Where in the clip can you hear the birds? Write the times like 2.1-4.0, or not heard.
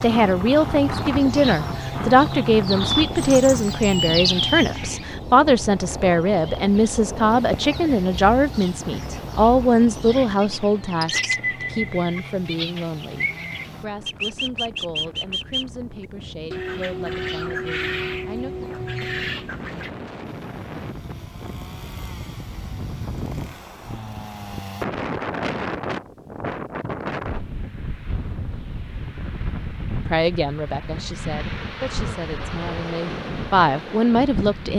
0.0-19.9.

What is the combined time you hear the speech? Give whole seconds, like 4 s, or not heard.
23 s.